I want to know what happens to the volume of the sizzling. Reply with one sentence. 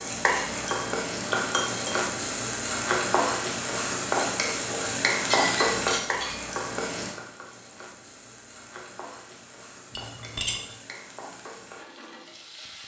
The loudness of the sizzling goes down.